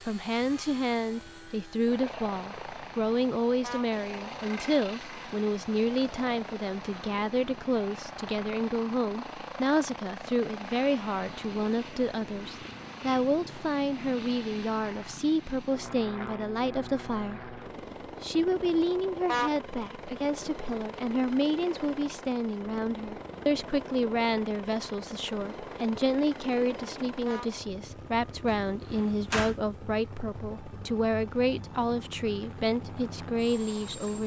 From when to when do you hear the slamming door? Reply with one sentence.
The slamming door can be heard from 28.4 to 29.6 s.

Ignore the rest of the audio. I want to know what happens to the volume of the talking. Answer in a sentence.
The volume of the talking stays about the same.